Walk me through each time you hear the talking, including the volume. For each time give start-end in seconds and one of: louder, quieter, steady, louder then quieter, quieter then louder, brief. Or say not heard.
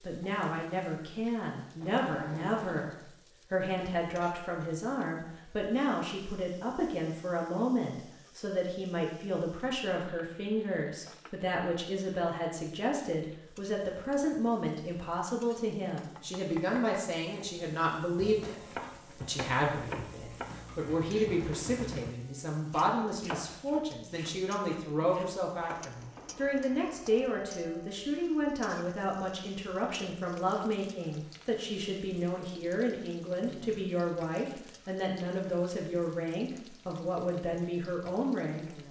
0.0-38.8 steady.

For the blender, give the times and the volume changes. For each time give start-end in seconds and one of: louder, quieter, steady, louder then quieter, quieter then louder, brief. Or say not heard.
not heard.